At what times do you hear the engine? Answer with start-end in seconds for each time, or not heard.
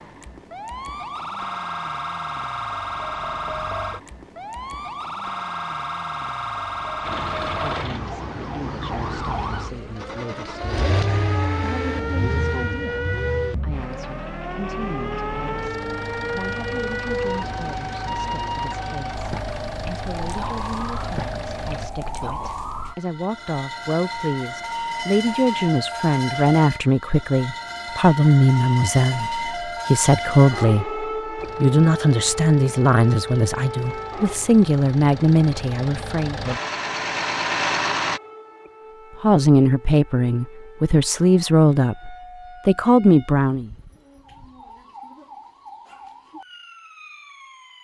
7.0-21.9, 31.4-38.2.